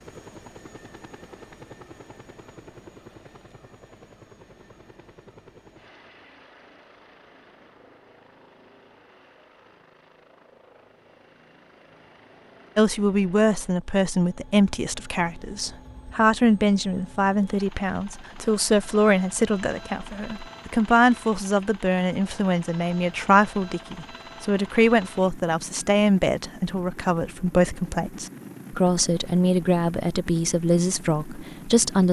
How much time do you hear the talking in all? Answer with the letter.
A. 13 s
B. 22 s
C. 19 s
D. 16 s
C.